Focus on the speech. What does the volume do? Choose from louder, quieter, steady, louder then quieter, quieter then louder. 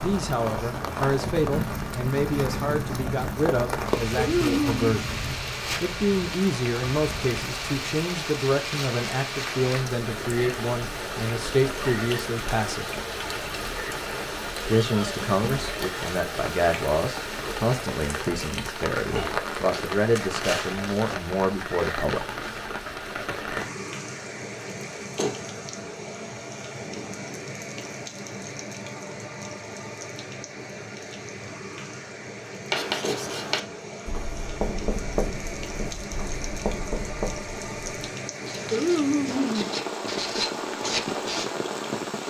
steady.